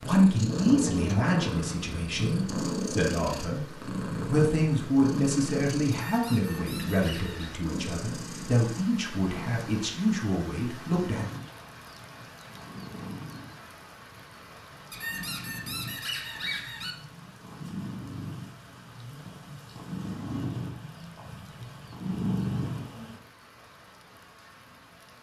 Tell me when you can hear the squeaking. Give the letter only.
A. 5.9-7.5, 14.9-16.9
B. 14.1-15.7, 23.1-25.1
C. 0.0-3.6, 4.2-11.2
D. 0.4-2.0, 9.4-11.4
A.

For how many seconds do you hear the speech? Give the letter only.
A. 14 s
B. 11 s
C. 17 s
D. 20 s
B.